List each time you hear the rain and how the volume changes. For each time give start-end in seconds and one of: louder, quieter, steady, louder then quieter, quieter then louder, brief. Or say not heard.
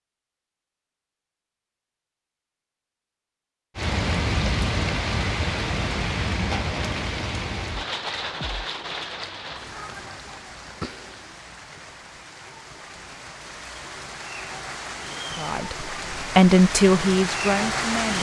3.8-18.1 quieter then louder.